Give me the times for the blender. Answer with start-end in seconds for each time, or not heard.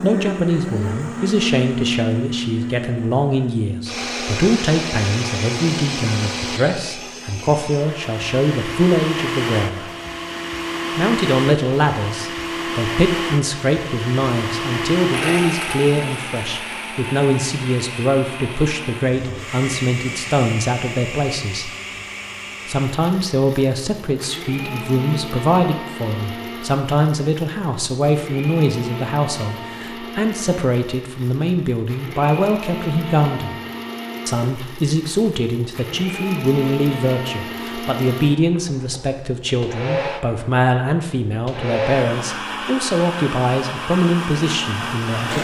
0.0-45.3.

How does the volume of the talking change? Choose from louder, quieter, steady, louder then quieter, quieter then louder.
steady.